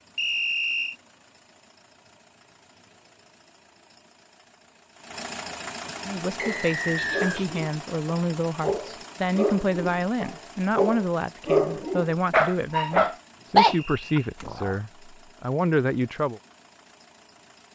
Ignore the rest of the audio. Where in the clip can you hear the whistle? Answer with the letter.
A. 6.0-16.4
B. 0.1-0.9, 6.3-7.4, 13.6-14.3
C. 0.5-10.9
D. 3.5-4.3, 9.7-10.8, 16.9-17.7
B.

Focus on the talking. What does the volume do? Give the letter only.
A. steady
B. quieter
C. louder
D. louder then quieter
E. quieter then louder
A.